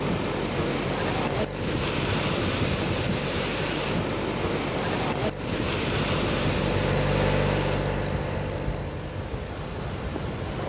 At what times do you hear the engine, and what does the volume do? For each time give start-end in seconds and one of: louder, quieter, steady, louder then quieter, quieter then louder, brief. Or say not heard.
0.0-10.4 louder then quieter.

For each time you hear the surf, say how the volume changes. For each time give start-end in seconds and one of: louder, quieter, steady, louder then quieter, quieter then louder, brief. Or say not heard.
0.0-10.6 quieter.